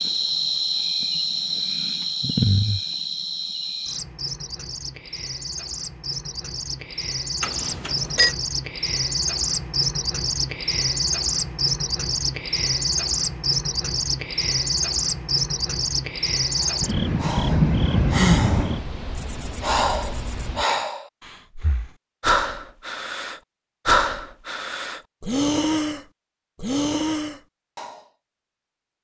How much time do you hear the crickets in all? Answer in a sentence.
You can hear the crickets for 21 seconds altogether.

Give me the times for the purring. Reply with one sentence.
The purring can't be heard in this clip.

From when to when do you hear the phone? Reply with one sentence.
The phone can be heard from 7.4 to 8.3 s.